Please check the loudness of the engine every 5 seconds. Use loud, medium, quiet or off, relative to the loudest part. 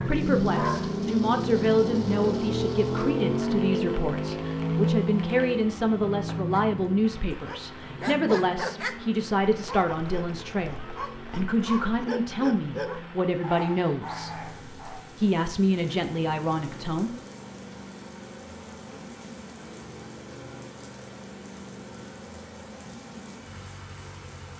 loud, medium, quiet, quiet, quiet.